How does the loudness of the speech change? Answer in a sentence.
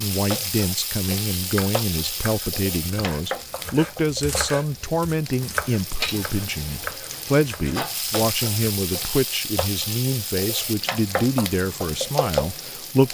The volume of the speech stays about the same.